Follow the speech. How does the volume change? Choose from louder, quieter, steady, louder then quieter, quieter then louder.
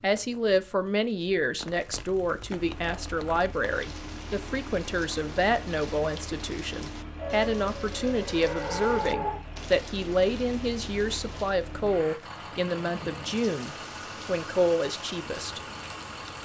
steady.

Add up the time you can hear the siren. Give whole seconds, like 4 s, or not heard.
2 s.